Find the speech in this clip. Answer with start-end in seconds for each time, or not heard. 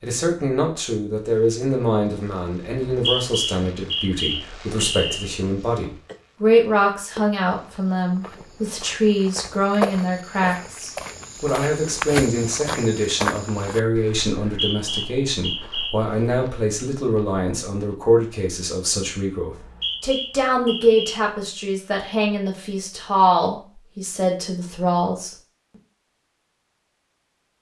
0.0-25.4.